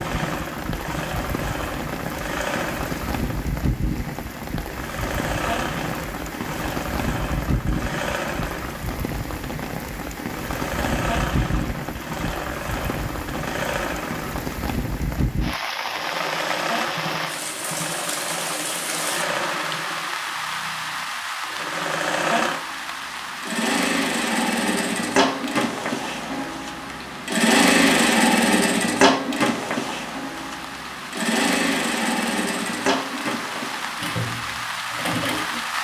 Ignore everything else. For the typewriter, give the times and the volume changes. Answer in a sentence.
The typewriter can't be heard in this clip.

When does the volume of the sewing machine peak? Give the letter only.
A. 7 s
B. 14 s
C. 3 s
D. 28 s
D.